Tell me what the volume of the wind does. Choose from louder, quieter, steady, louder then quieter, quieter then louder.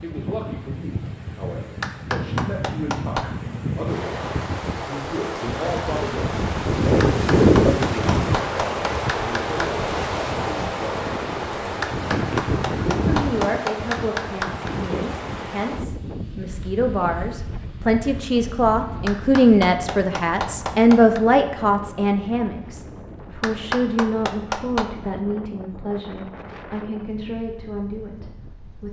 louder then quieter.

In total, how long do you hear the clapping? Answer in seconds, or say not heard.
11 s.